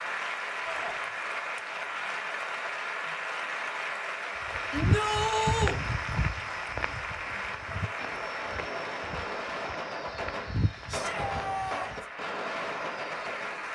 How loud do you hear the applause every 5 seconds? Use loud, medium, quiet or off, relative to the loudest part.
loud, loud, medium.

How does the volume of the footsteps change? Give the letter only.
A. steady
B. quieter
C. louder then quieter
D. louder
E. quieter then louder
E.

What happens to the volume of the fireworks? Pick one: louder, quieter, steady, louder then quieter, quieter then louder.
steady.